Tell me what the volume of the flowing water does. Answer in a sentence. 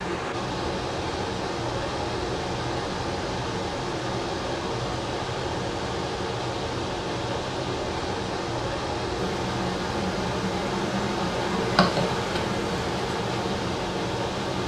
The volume of the flowing water stays about the same.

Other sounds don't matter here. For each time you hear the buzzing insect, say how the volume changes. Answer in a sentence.
You can hear the buzzing insect from 9.1 to 14.6 s, getting louder then quieter.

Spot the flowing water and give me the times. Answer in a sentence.
You can hear the flowing water from 0.0 to 14.6 s.